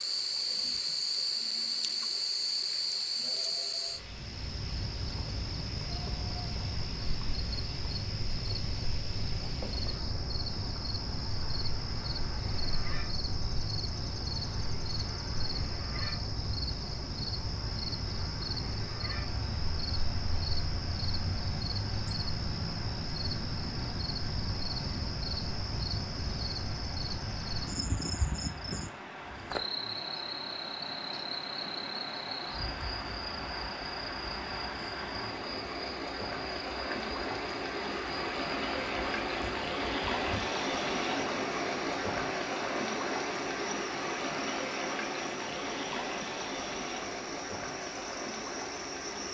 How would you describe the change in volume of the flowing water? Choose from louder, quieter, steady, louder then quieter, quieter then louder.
louder.